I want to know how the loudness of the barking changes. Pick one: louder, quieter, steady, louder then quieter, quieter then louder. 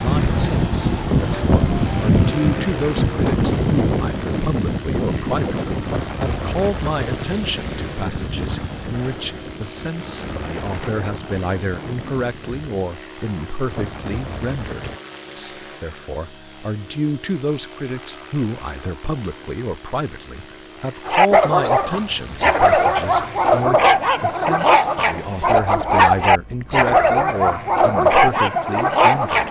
steady.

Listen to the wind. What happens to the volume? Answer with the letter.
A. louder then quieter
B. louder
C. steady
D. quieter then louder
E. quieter
E.